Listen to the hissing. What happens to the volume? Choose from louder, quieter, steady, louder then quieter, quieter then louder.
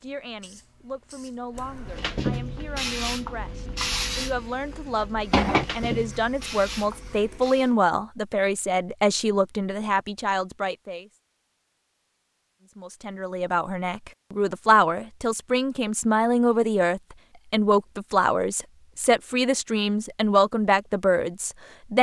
louder then quieter.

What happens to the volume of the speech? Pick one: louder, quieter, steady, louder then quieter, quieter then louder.
louder.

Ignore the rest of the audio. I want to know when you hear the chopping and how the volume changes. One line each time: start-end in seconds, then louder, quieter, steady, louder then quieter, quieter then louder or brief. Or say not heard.
not heard.